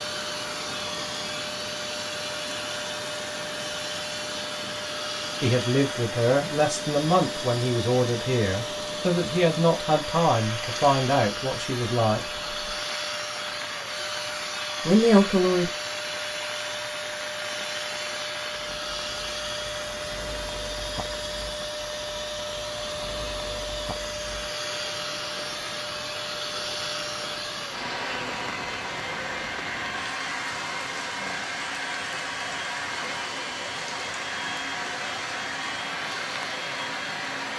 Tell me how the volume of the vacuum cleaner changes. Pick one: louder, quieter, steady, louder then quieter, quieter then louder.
steady.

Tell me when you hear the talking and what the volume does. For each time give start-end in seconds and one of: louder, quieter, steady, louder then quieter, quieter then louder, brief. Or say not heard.
5.4-12.2 steady
14.8-15.7 brief.